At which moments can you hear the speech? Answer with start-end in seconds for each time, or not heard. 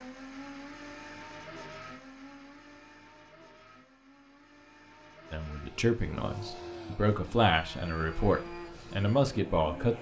5.3-9.9.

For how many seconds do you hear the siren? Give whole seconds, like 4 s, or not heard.
not heard.